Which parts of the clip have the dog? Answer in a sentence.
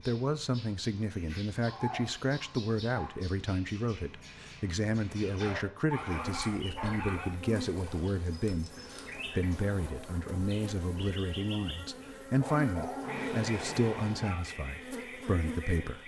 The dog can be heard from 1.6 to 3.2 s, from 5.3 to 7.3 s and from 12.4 to 14.4 s.